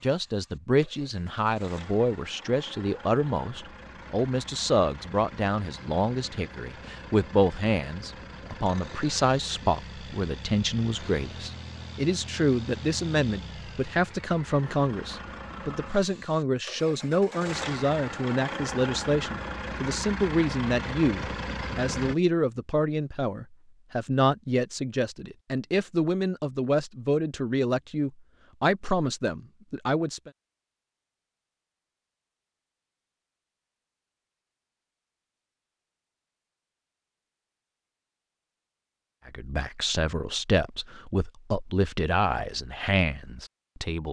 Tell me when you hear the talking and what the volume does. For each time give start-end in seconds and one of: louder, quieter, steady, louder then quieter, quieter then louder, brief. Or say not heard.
0.0-30.3 steady
39.2-44.0 steady.